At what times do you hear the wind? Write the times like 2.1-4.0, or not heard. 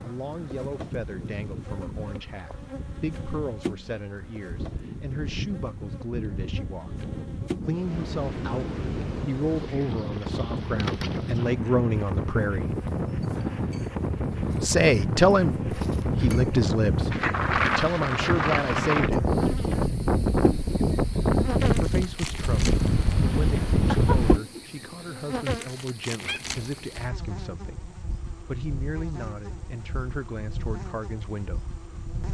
0.0-24.4.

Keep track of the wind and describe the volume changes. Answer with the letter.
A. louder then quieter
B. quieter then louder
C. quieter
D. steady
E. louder
E.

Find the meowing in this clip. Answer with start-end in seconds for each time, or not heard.
26.2-26.8.